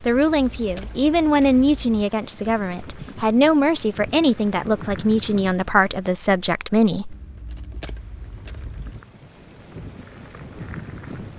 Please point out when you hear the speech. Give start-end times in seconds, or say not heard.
0.0-7.2.